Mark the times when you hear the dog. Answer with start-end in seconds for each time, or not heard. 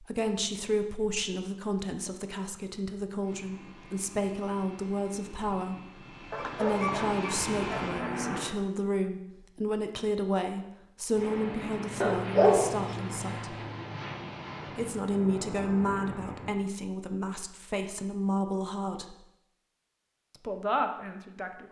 6.3-8.2, 12.0-13.2.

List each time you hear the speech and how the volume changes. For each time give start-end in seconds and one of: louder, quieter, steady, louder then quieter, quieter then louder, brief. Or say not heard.
0.0-13.6 steady
14.8-19.1 quieter then louder
20.4-21.6 brief.